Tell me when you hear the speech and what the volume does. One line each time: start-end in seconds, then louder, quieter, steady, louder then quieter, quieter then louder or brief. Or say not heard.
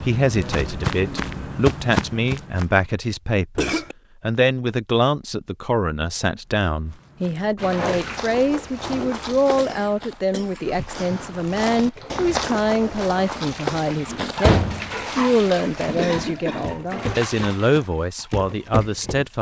0.0-19.3 steady.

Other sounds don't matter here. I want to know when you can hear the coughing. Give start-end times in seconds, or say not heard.
3.5-4.0, 9.6-10.8, 15.8-16.8.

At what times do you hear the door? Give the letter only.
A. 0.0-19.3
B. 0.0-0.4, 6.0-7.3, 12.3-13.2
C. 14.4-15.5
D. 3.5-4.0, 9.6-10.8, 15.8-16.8
C.